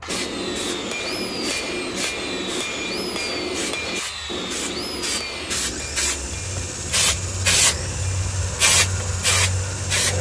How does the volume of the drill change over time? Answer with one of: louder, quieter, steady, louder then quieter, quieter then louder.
steady.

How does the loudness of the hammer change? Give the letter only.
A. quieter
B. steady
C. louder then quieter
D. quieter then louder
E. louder
A.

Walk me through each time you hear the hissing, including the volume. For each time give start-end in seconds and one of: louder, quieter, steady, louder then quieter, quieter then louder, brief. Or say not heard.
0.0-10.1 louder.